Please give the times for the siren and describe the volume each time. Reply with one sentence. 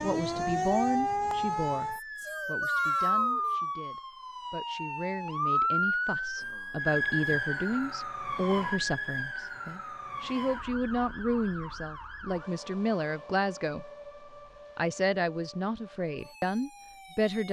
You can hear the siren from 0.0 to 17.4 s, getting quieter.